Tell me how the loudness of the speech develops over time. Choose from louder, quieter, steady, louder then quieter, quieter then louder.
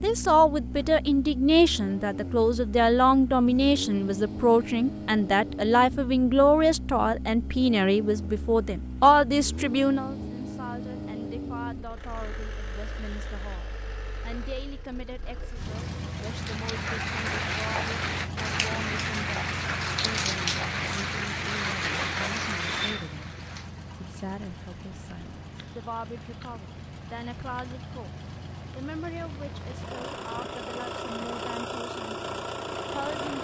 quieter.